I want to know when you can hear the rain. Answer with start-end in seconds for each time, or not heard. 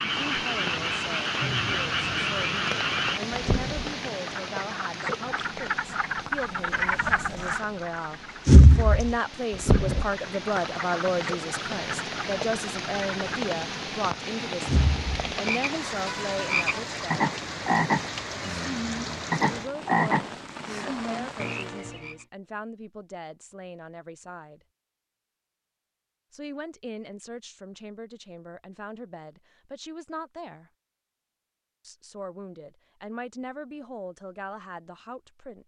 0.0-22.0.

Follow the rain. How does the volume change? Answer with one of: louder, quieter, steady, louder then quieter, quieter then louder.
quieter then louder.